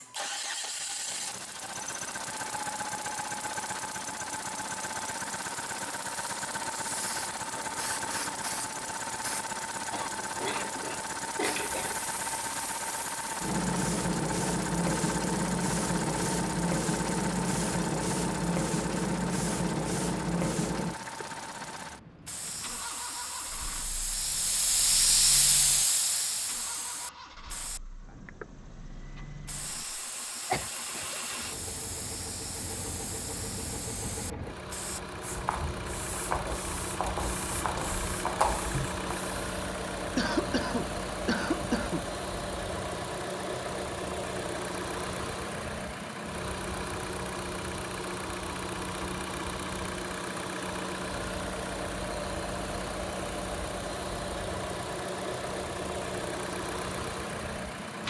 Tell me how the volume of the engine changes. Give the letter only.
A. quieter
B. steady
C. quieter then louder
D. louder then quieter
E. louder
C.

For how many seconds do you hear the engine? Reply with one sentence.
You can hear the engine for 58 seconds altogether.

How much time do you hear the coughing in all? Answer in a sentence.
The coughing can be heard for 5 seconds in total.